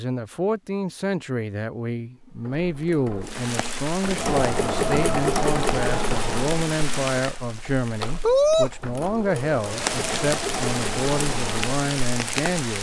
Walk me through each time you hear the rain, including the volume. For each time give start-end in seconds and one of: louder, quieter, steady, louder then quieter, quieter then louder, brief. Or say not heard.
3.2-12.7 louder then quieter.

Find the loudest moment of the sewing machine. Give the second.
5 s.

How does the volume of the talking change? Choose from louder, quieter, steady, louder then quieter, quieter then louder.
steady.